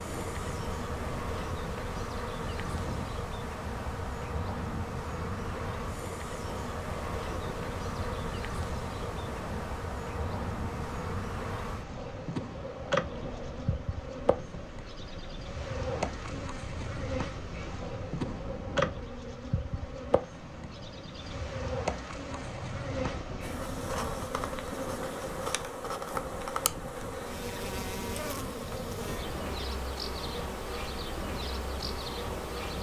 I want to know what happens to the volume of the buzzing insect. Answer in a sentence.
The loudness of the buzzing insect stays about the same.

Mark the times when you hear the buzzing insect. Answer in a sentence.
The buzzing insect can be heard from 0.0 to 32.7 s.